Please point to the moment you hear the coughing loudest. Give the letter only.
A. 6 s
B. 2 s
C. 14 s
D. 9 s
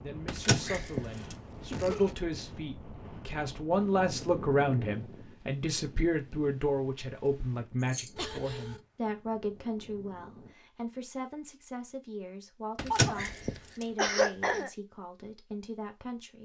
C.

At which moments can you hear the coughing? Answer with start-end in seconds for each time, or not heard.
0.9-2.1, 8.2-8.8, 12.9-14.7.